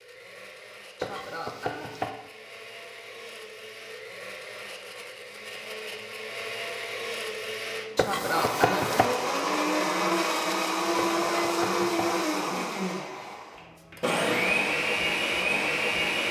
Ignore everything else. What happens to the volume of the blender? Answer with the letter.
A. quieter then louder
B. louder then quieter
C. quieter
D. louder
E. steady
D.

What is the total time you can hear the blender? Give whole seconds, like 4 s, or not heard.
16 s.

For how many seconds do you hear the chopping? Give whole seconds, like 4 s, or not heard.
3 s.